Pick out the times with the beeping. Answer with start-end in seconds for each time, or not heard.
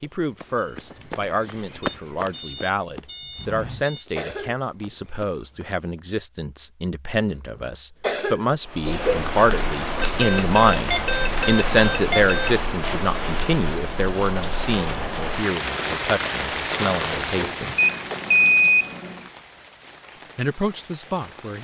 1.8-4.0, 10.0-12.6, 17.8-19.3.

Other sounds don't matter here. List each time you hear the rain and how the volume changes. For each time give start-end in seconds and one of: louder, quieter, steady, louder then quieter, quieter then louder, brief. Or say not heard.
8.6-21.5 quieter.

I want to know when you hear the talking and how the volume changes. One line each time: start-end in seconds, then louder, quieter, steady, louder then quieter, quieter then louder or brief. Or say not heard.
0.0-17.8 louder then quieter
20.4-21.5 brief.